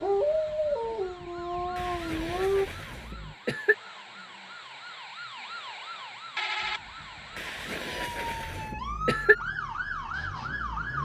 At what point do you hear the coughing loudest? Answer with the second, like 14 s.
9 s.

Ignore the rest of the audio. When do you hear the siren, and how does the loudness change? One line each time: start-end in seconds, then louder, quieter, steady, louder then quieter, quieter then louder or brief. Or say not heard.
0.0-11.0 louder.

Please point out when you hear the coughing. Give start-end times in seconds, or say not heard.
1.8-3.8, 7.3-9.3.